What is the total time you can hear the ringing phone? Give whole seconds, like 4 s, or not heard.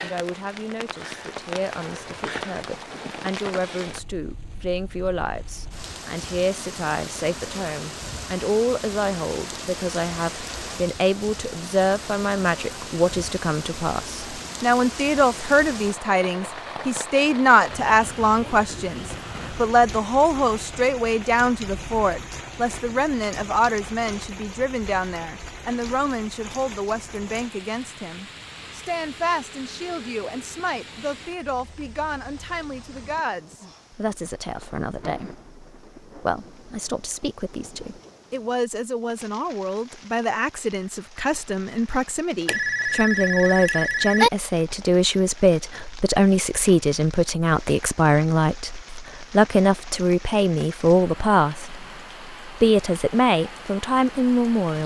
2 s.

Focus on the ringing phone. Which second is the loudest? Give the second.
44 s.